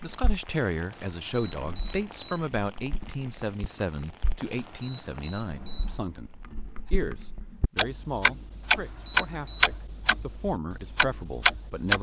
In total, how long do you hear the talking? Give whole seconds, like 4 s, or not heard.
12 s.